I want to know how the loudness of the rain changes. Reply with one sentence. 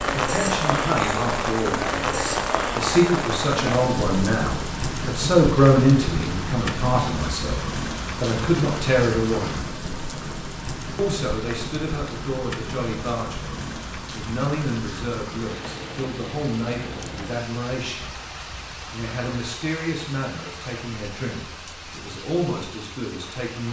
The volume of the rain goes down.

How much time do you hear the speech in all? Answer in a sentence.
The speech can be heard for 22 seconds in total.